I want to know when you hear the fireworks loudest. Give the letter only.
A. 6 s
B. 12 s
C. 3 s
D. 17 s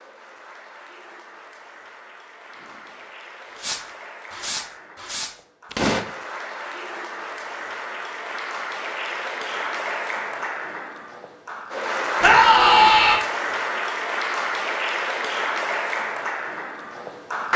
A.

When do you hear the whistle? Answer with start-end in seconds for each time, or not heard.
not heard.